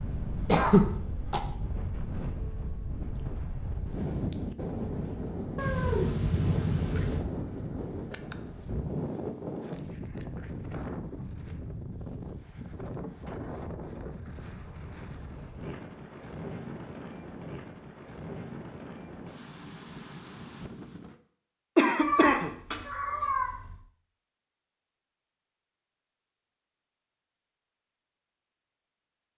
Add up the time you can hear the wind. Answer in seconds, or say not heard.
21 s.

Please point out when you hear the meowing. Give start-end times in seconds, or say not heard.
5.5-7.2, 22.0-23.8.